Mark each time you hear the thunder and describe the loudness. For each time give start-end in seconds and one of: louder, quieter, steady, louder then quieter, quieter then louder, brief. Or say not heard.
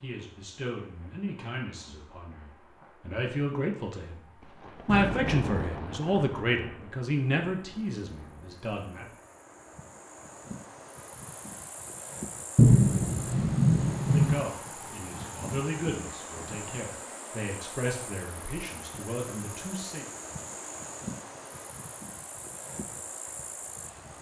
4.4-9.2 quieter
12.6-14.4 brief.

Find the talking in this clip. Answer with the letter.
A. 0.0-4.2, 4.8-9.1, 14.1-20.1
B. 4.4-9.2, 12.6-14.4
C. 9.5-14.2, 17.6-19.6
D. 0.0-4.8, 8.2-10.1
A.